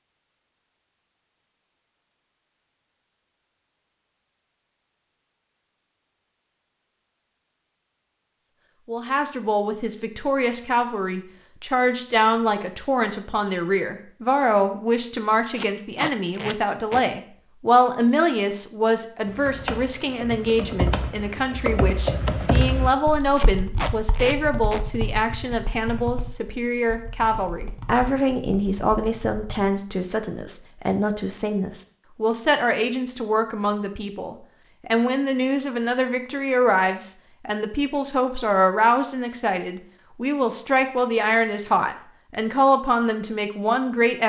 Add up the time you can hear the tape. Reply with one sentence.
You can hear the tape for 3 seconds altogether.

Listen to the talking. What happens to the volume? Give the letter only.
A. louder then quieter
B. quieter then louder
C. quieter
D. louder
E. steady
E.